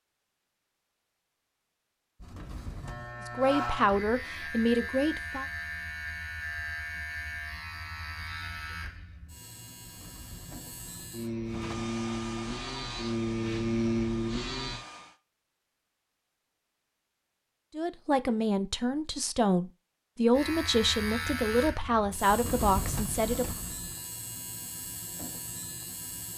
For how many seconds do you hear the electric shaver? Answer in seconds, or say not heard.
18 s.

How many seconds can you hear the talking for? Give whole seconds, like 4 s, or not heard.
8 s.